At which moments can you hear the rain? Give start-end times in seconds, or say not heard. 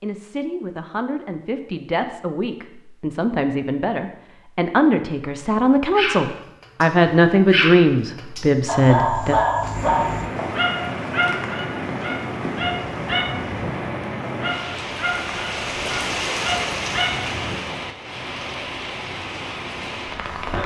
9.7-20.6.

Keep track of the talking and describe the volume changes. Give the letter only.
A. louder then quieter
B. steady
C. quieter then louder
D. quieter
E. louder
E.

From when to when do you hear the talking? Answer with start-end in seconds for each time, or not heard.
0.0-9.4.